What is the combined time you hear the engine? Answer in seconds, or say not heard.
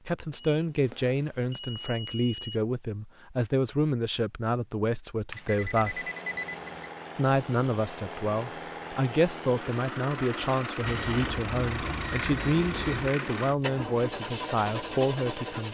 10 s.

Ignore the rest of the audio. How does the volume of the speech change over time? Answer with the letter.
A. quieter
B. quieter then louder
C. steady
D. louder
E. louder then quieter
C.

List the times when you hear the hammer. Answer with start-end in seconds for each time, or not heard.
not heard.